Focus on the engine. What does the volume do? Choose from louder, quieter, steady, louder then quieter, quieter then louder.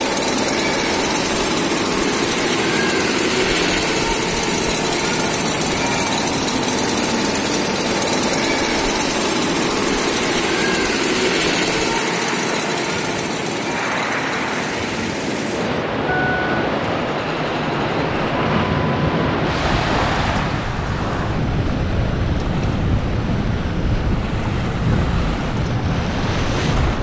quieter.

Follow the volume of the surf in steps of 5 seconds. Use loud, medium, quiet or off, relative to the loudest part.
medium, medium, medium, loud, loud, loud.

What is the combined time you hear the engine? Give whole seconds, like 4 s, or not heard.
27 s.